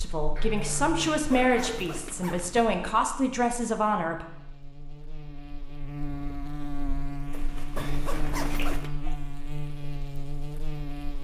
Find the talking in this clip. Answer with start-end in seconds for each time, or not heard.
0.0-4.2.